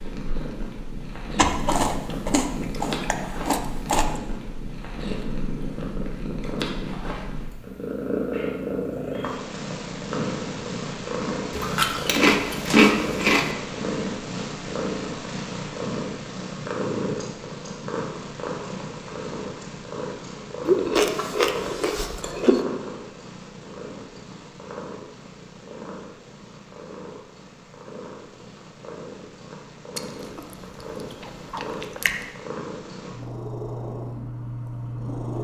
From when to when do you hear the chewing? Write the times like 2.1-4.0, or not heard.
1.4-4.0, 11.5-13.6, 20.6-22.6, 29.9-32.2.